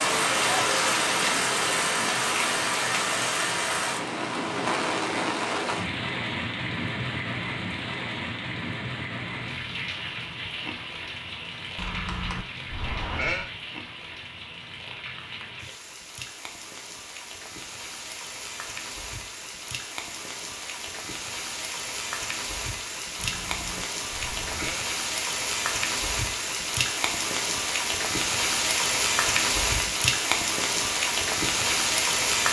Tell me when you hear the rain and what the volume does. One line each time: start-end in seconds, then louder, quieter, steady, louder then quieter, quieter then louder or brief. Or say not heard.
0.0-32.4 quieter then louder.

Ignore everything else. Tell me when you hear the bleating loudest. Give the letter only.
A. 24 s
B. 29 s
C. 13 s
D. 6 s
C.